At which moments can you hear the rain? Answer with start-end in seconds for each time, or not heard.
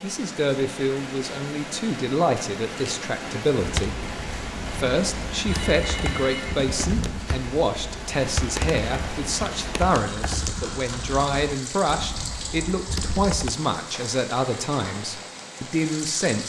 0.0-16.4.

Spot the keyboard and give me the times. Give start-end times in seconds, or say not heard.
3.6-13.5.